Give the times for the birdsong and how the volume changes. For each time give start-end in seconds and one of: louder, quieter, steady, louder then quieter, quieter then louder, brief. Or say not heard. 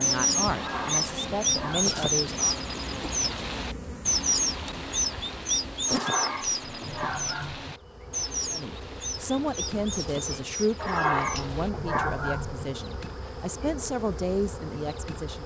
0.0-11.7 quieter.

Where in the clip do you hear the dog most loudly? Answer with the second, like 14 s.
11 s.